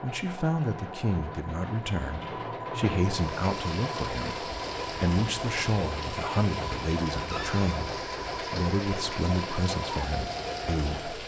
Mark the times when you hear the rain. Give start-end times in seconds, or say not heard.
3.0-11.2.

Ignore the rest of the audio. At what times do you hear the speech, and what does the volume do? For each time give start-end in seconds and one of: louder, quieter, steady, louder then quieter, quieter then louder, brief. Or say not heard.
0.0-11.2 steady.